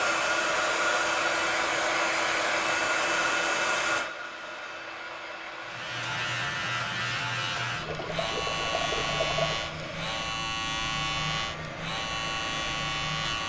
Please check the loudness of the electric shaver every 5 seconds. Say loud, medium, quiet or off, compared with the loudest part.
off, loud, loud.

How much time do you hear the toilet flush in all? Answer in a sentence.
The toilet flush can be heard for 2 seconds in total.